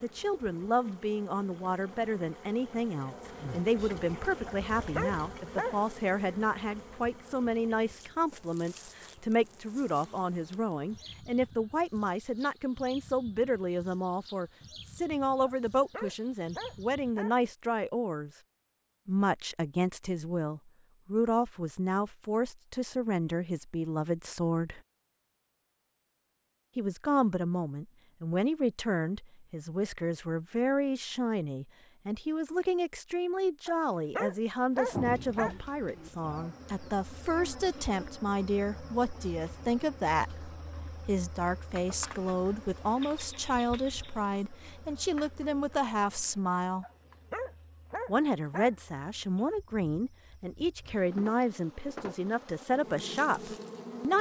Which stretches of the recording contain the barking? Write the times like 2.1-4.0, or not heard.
4.5-5.8, 15.4-17.4, 33.6-35.5, 46.8-48.8.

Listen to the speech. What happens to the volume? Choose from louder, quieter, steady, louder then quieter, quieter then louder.
steady.